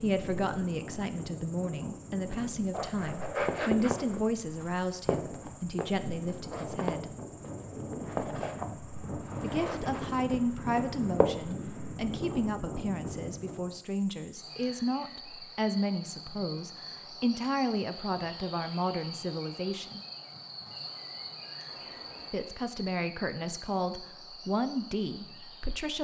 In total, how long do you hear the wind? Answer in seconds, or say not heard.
14 s.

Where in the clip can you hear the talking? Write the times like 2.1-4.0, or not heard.
0.0-7.1, 9.4-20.0, 22.3-25.9.